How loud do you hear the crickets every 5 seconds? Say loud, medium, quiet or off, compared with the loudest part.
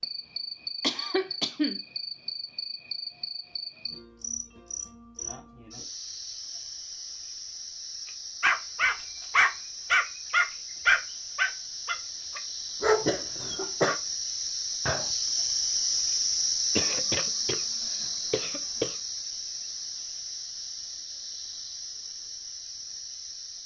medium, medium, medium, loud, medium.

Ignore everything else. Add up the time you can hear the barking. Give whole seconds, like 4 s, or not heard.
5 s.